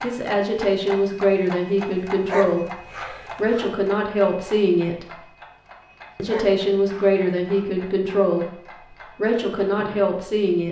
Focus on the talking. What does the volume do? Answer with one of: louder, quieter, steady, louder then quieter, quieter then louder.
steady.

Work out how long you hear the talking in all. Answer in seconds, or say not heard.
10 s.